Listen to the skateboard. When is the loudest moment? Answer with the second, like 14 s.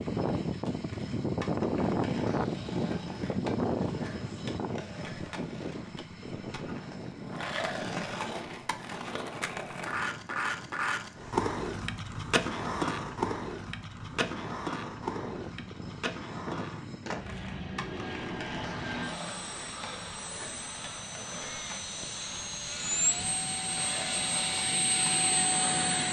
13 s.